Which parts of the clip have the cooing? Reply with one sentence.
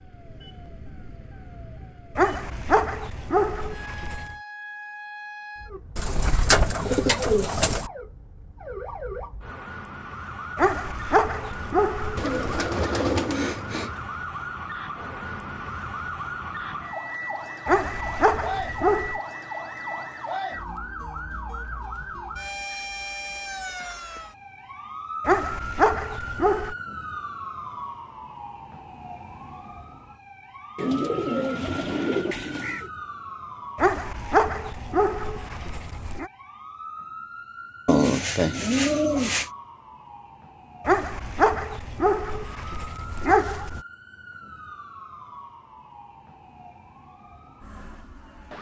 The cooing can be heard from 6.0 to 7.9 s, from 12.2 to 14.0 s, from 30.8 to 32.9 s and from 37.9 to 39.5 s.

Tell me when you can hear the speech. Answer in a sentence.
You can't hear the speech here.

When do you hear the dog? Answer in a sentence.
The dog can be heard from 2.1 to 4.3 s, from 10.6 to 12.7 s, from 17.6 to 19.2 s, from 25.2 to 26.8 s, from 33.8 to 36.3 s and from 40.9 to 43.8 s.